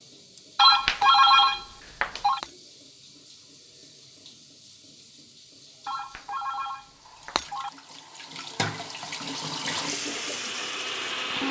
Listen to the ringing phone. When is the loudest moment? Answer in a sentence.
The loudest moment of the ringing phone is at 1 second.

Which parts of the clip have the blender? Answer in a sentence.
The blender can be heard from 9.8 to 11.4 s.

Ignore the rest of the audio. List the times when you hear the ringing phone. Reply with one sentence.
You can hear the ringing phone from 0.6 to 2.4 s and from 5.8 to 7.7 s.